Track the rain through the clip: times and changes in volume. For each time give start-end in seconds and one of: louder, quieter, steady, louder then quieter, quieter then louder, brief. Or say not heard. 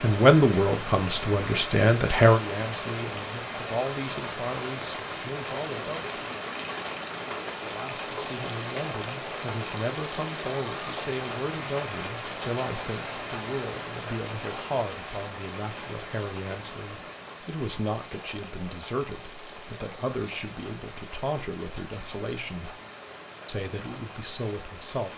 0.0-25.1 quieter.